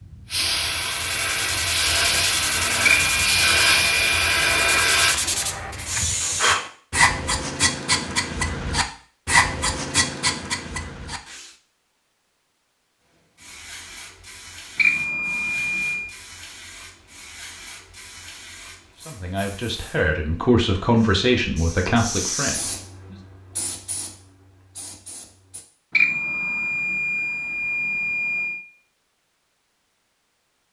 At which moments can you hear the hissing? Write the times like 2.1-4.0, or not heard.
0.0-6.5, 13.2-25.6.